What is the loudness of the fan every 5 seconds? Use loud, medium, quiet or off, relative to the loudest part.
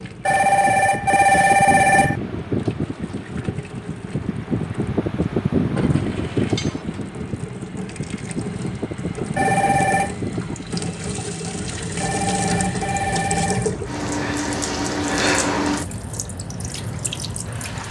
loud, loud, medium, medium.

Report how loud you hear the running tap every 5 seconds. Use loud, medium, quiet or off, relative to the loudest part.
quiet, medium, loud, loud.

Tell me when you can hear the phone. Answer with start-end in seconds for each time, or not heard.
0.2-2.2, 9.3-10.2, 12.0-13.7.